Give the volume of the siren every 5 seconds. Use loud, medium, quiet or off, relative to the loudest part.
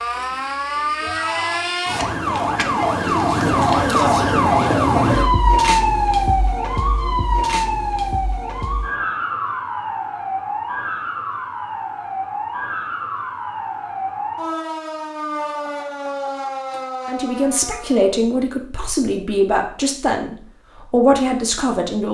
loud, loud, medium, medium, off.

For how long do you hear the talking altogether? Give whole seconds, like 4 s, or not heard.
5 s.